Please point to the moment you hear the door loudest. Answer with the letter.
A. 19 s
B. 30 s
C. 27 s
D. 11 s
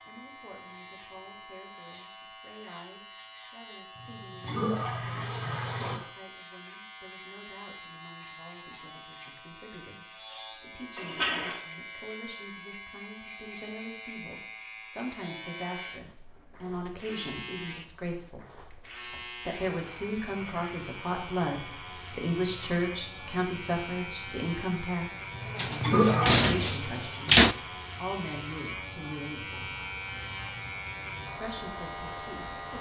C.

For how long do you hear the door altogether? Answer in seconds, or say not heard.
2 s.